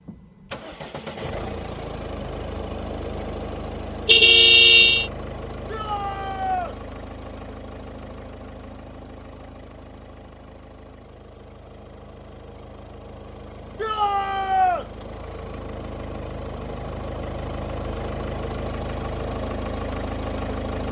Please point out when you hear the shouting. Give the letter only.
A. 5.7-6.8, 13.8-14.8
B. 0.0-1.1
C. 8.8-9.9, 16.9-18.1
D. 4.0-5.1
A.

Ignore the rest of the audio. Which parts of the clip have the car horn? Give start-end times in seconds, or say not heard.
4.0-5.1.